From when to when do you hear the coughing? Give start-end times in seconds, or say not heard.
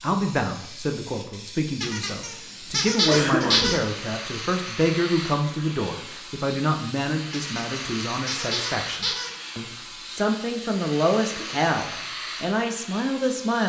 3.0-3.8, 11.2-11.8.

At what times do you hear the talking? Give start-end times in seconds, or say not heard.
0.0-13.6.